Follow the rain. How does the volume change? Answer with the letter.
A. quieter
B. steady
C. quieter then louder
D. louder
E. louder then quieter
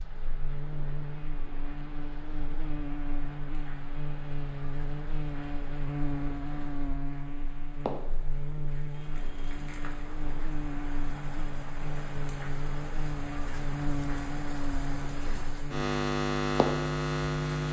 D.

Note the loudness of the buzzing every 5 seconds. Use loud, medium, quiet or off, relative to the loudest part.
medium, medium, medium, loud.